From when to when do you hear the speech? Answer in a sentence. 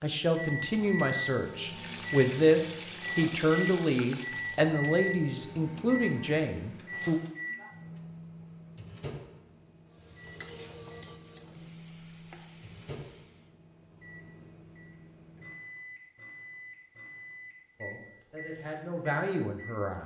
You can hear the speech from 0.0 to 7.2 s and from 17.8 to 20.0 s.